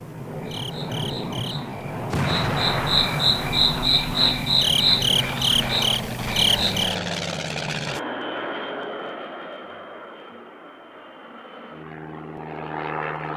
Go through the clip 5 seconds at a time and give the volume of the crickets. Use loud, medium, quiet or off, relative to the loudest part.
loud, loud, off.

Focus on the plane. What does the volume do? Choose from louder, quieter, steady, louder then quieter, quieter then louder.
quieter.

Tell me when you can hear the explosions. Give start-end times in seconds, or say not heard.
2.1-3.8.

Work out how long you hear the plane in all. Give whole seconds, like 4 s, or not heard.
13 s.